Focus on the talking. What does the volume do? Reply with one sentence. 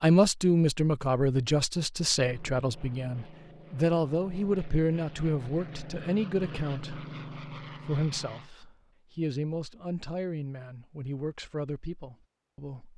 The loudness of the talking goes down.